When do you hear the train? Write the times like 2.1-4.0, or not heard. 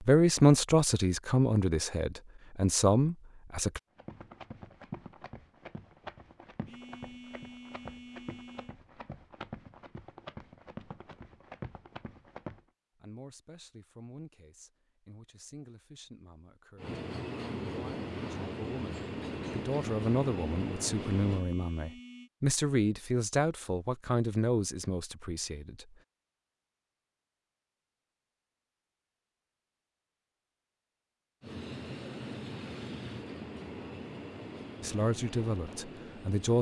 16.8-21.4, 31.4-36.5.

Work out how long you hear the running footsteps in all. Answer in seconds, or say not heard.
9 s.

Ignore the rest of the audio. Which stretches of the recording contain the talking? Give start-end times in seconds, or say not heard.
0.0-3.8, 12.9-25.9, 34.8-36.5.